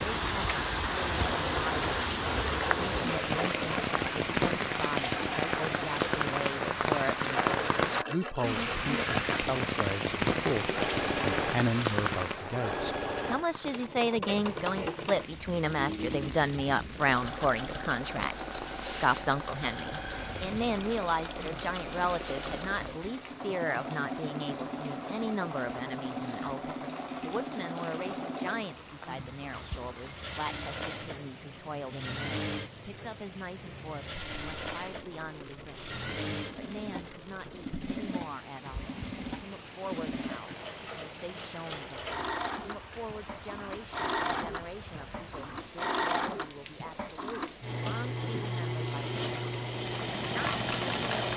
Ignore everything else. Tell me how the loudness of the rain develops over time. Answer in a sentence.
The loudness of the rain goes down.